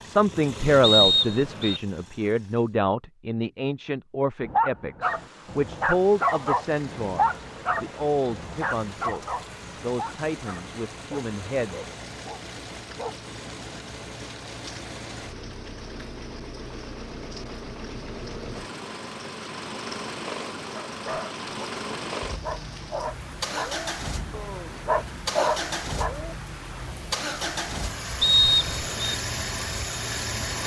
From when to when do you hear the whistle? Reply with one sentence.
You can hear the whistle from 0.8 to 1.8 s and from 28.2 to 29.1 s.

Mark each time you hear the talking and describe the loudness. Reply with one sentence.
You can hear the talking from 0.0 to 11.8 s, getting quieter.